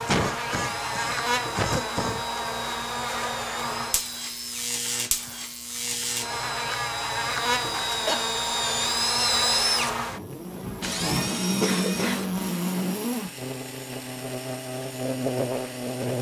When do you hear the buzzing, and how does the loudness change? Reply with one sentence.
You can hear the buzzing from 0.0 to 16.1 s, at a steady volume.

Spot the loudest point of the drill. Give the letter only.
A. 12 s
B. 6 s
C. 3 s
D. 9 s
D.